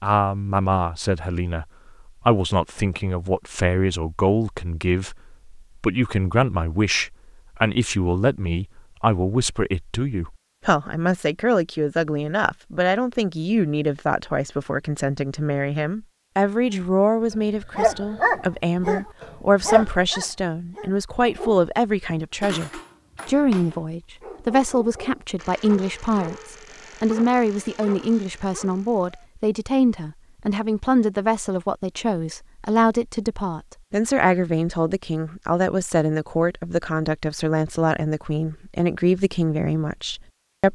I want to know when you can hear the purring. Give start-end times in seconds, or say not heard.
not heard.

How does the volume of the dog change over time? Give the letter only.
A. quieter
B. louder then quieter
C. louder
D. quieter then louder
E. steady
A.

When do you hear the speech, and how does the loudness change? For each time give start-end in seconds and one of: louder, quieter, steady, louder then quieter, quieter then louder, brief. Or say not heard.
0.0-40.7 steady.